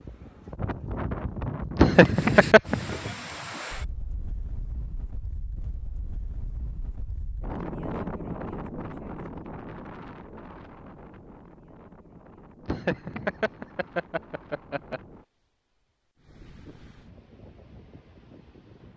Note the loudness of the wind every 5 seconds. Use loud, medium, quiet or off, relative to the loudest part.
loud, loud, quiet, quiet.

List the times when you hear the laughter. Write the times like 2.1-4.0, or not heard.
1.8-2.8, 12.7-15.0.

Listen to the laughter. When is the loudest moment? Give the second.
2 s.